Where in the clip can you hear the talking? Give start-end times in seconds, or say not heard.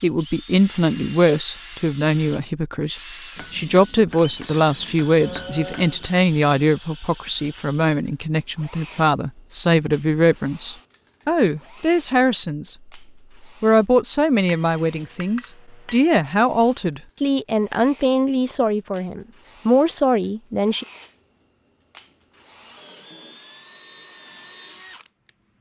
0.0-12.8, 13.6-20.9.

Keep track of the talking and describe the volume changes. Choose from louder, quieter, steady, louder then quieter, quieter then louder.
steady.